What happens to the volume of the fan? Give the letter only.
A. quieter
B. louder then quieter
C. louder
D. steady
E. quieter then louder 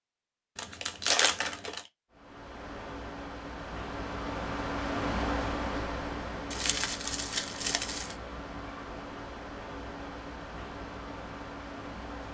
B.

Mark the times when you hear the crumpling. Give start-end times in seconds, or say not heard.
0.6-1.9, 6.5-8.2.